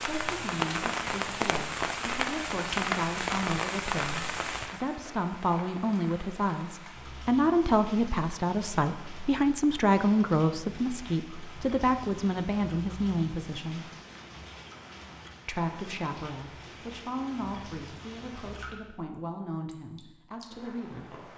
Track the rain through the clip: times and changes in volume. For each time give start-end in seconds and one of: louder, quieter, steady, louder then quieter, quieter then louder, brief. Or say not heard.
0.0-21.3 quieter.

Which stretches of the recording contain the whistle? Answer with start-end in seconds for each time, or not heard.
not heard.